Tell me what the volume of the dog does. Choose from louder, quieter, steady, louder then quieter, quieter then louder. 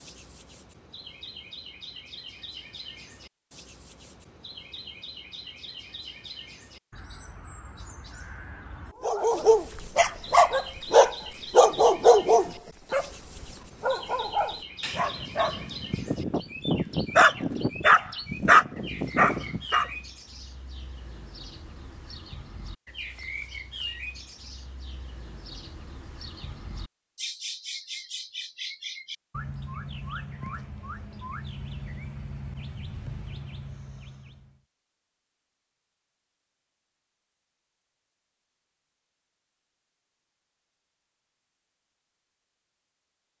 quieter then louder.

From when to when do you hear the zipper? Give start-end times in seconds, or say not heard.
not heard.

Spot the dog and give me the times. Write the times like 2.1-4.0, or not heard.
9.0-13.1, 13.8-19.9.